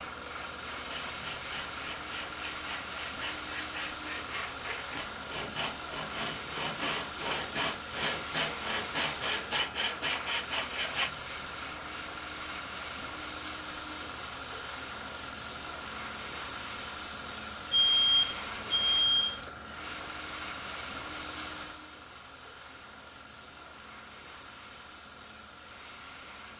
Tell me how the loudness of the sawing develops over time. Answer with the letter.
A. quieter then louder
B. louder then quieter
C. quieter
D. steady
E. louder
E.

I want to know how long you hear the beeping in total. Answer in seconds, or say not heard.
2 s.